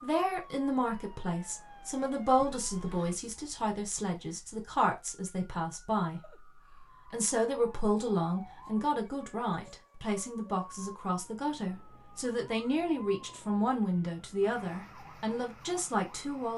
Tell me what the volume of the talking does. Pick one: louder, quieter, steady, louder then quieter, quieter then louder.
steady.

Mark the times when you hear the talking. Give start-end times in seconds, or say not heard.
0.0-6.2, 7.1-16.5.